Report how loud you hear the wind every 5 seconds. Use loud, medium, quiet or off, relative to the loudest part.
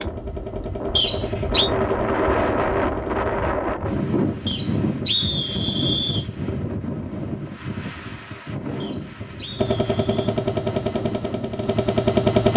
loud, medium, medium.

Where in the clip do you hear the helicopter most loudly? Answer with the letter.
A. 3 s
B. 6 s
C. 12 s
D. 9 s
C.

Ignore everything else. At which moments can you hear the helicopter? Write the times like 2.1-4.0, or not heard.
0.0-3.3, 9.6-12.5.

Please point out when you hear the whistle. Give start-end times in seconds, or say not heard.
0.9-1.7, 4.5-6.2, 8.8-10.3.